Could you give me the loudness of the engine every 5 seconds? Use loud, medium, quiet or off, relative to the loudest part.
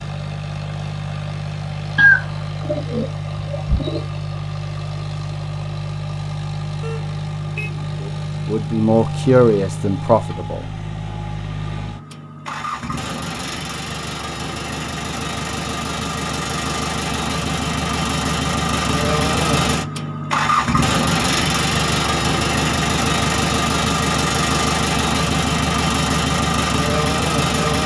medium, medium, medium, loud, loud, loud.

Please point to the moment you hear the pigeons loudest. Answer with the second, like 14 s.
2 s.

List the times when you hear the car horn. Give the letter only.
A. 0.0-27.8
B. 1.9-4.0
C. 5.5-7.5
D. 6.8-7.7
D.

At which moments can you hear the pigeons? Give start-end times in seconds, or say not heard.
1.9-4.0.